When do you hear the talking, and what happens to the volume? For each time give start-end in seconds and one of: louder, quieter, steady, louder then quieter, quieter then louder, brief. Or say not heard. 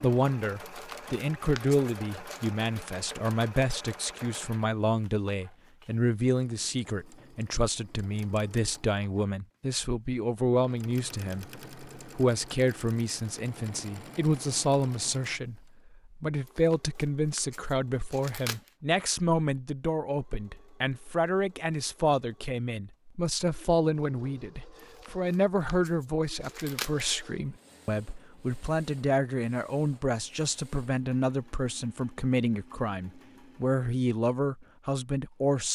0.0-35.6 steady.